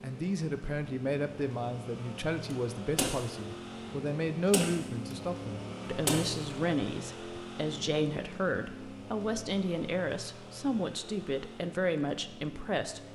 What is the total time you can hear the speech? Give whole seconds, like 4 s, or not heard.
13 s.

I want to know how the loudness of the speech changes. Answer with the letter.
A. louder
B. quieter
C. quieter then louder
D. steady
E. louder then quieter
D.